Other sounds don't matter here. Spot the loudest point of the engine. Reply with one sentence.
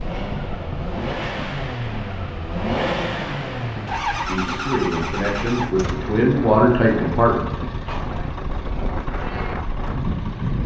The loudest moment of the engine is at 3 seconds.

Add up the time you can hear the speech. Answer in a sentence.
You can hear the speech for 3 seconds altogether.